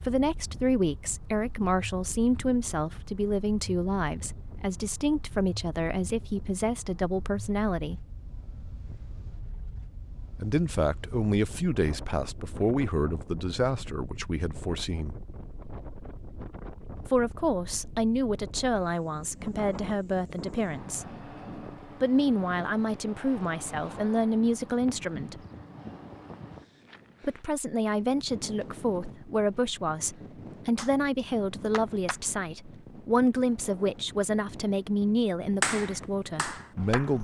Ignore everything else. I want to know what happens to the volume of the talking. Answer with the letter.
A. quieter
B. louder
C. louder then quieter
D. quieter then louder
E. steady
E.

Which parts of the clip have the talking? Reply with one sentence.
You can hear the talking from 0.1 to 8.1 s, from 10.3 to 15.2 s, from 17.1 to 21.1 s, from 21.9 to 25.4 s and from 27.2 to 37.2 s.